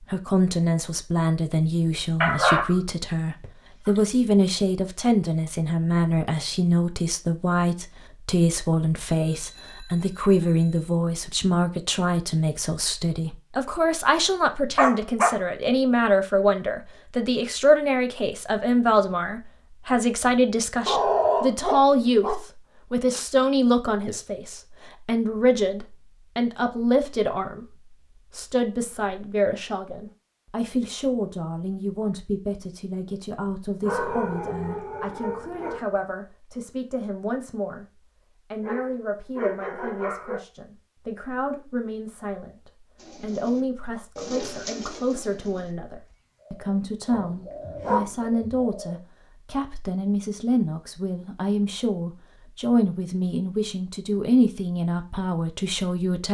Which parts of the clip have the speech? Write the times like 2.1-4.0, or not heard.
0.0-56.2.